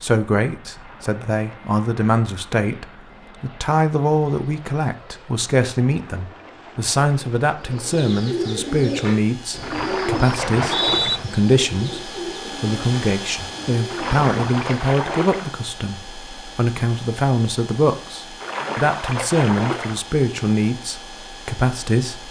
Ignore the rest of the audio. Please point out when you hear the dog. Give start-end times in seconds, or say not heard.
not heard.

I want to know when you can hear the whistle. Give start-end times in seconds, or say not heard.
10.4-11.2.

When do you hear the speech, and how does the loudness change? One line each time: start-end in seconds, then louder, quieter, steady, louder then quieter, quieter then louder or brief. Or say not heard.
0.0-22.2 steady.